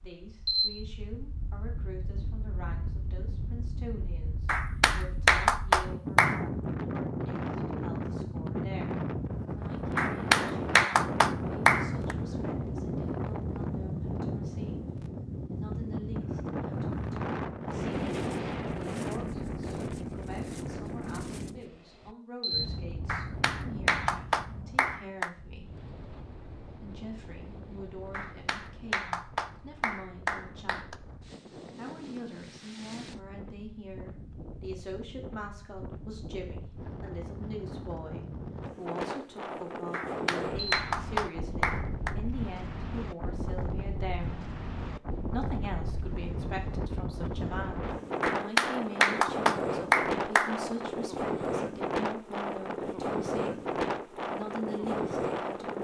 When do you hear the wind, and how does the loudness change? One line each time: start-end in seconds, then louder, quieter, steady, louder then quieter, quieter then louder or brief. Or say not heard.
0.0-55.7 quieter then louder.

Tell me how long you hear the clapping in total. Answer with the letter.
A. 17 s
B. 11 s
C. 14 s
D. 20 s
C.